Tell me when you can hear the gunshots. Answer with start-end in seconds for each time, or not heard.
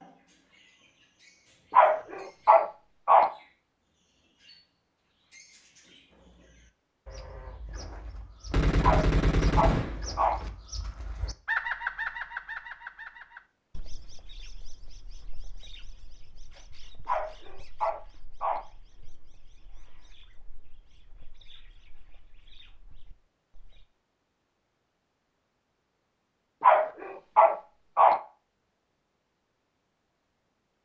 8.5-10.5.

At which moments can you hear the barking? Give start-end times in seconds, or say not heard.
1.7-3.3, 8.8-10.4, 17.1-18.6, 26.6-28.2.